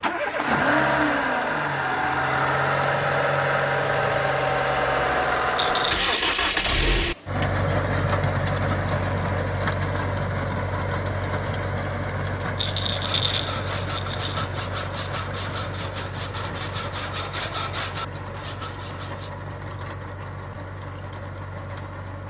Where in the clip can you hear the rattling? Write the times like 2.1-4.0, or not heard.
5.5-6.1, 12.6-14.4.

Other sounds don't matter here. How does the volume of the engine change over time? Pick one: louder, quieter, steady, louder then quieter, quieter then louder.
quieter.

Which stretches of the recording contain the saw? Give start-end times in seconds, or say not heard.
13.0-19.3.